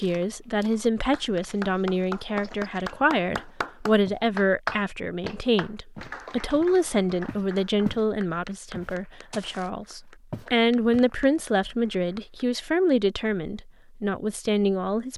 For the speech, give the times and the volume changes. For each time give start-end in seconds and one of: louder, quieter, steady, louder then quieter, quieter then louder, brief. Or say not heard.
0.0-15.1 steady.